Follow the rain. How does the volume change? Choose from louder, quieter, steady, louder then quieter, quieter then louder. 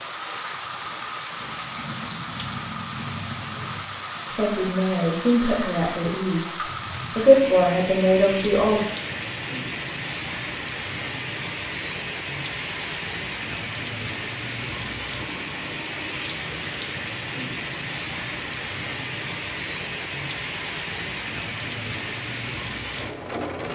steady.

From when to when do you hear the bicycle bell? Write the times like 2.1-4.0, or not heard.
12.6-13.2.